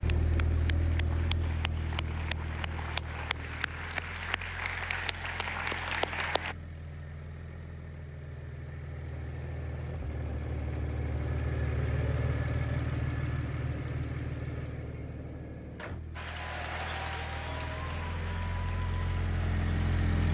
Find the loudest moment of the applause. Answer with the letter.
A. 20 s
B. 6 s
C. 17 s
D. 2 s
B.